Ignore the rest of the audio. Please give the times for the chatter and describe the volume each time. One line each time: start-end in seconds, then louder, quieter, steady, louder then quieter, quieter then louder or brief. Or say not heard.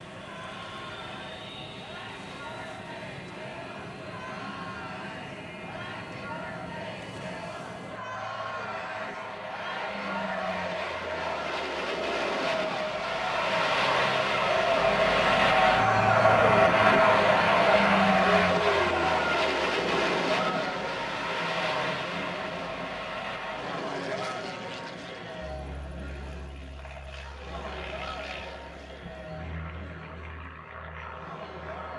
0.1-31.9 louder then quieter.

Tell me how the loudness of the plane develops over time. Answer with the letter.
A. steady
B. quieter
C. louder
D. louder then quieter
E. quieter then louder
D.